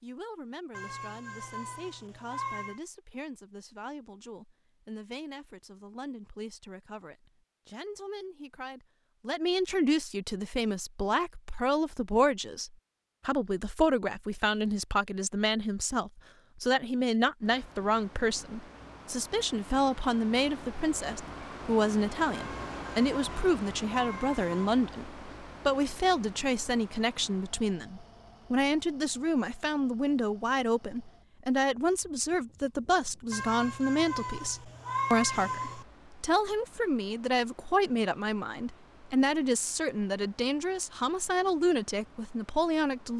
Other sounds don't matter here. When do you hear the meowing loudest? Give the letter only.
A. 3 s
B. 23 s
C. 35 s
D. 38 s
C.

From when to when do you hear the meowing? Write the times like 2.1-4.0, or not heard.
0.7-2.8, 22.3-24.8, 33.3-35.9.